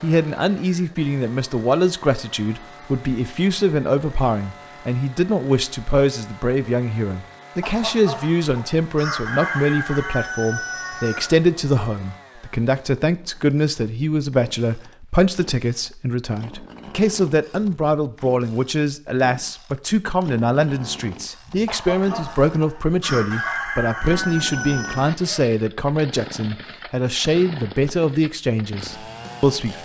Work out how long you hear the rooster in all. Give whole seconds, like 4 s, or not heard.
7 s.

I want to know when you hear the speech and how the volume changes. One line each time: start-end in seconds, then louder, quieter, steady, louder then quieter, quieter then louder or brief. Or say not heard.
0.0-29.8 steady.